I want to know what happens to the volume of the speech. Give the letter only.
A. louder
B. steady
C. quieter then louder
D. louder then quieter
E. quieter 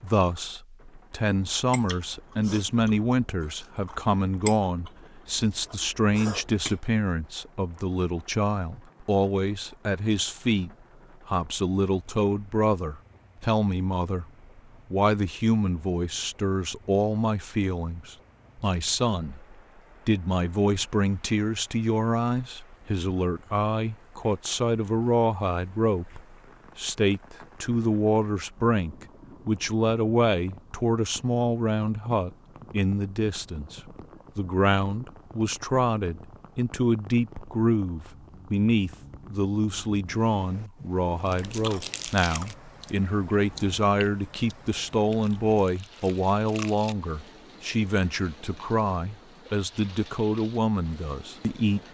B.